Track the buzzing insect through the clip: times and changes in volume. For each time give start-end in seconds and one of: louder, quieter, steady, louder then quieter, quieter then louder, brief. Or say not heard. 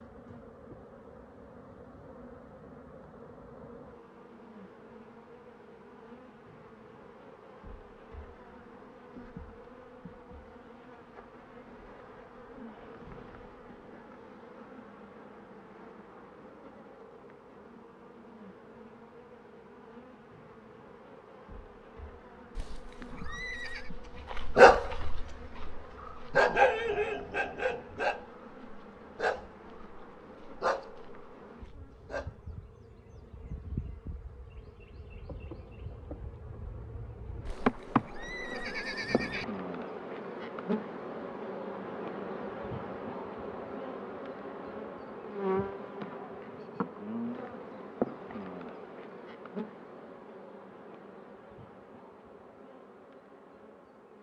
0.0-54.1 louder.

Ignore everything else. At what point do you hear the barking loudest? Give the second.
25 s.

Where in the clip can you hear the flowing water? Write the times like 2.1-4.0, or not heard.
not heard.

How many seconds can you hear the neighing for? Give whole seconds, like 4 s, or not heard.
3 s.